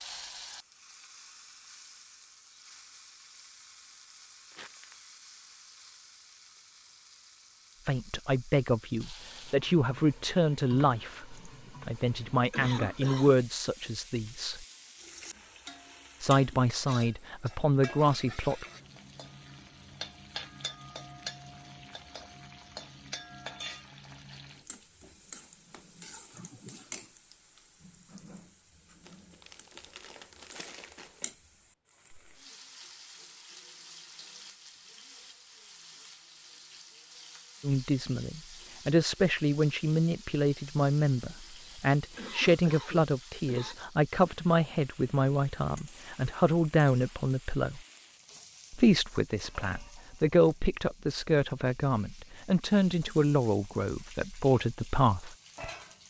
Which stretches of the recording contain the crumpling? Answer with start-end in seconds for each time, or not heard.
4.5-5.0, 29.0-31.3.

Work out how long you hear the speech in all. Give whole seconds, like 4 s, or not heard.
26 s.